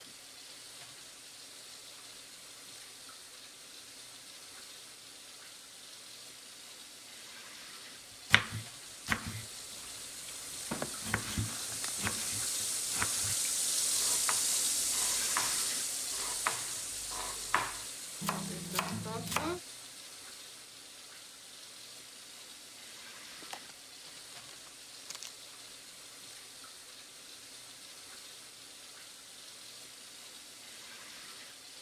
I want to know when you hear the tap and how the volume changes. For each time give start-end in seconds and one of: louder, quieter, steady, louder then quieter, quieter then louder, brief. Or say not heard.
0.0-31.7 louder then quieter.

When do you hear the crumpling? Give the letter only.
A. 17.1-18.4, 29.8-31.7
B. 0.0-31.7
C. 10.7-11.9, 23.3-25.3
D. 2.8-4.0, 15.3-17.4
C.